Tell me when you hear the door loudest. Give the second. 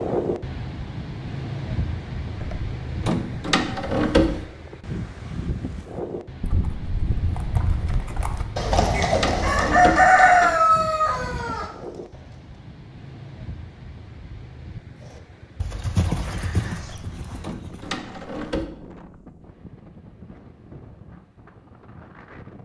4 s.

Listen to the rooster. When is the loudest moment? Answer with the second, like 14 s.
10 s.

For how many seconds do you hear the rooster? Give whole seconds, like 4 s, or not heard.
3 s.